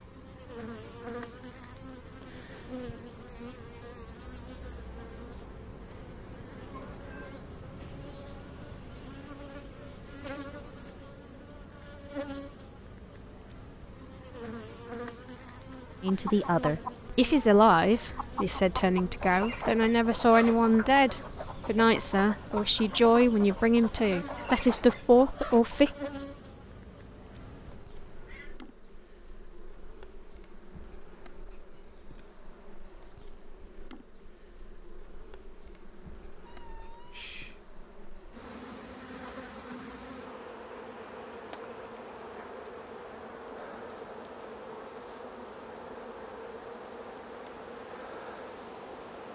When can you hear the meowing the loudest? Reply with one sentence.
The loudest moment of the meowing is at 37 seconds.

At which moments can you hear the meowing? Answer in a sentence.
You can hear the meowing from 6.7 to 7.5 s, from 27.9 to 28.6 s and from 36.5 to 37.6 s.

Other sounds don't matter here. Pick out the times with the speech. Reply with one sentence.
The speech can be heard from 16.0 to 25.9 s.